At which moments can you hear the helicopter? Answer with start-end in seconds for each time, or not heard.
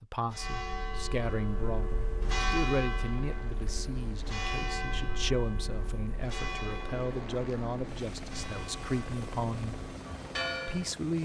3.0-11.2.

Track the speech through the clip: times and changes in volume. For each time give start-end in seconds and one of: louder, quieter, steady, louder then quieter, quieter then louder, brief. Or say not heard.
0.0-9.8 steady
10.7-11.2 brief.